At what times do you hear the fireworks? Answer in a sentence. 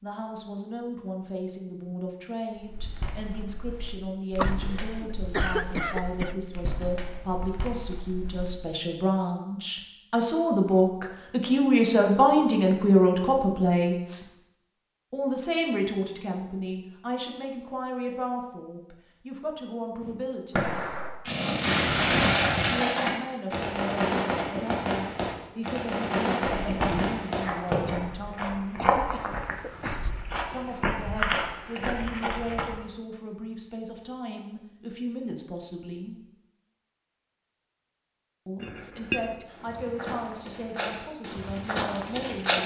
You can hear the fireworks from 20.0 to 27.9 s.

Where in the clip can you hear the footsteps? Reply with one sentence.
The footsteps can be heard from 2.5 to 8.6 s, from 26.6 to 32.8 s and from 39.5 to 42.6 s.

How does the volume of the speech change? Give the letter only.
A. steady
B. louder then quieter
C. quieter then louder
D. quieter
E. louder
B.